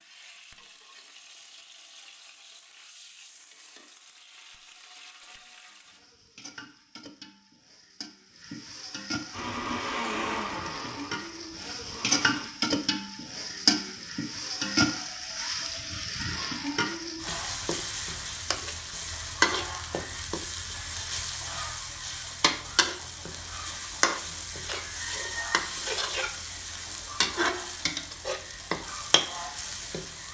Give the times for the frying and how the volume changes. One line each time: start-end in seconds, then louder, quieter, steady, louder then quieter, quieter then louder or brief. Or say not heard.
0.0-30.3 louder.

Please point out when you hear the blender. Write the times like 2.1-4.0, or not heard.
9.3-12.4.